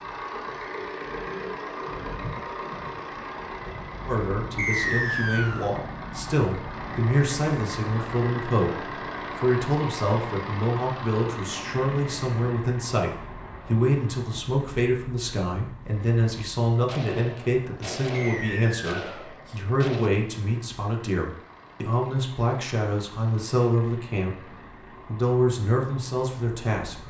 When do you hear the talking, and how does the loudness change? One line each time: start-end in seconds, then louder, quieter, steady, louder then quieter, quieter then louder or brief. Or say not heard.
4.0-24.4 steady
25.1-27.0 brief.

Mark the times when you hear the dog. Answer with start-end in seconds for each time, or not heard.
not heard.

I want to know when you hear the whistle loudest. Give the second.
5 s.